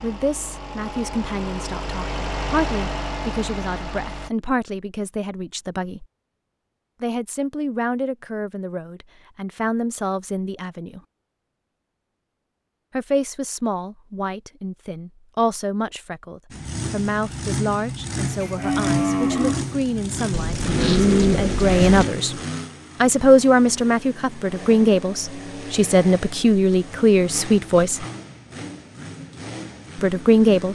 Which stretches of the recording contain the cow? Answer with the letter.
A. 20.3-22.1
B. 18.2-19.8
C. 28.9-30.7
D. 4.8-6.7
B.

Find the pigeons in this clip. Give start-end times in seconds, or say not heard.
20.3-22.1.